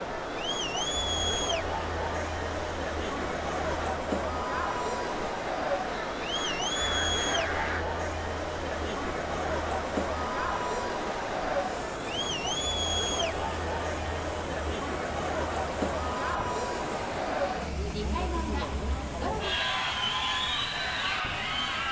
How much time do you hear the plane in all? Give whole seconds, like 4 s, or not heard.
not heard.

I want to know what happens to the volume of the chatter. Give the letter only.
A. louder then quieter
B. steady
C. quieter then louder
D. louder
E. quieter
B.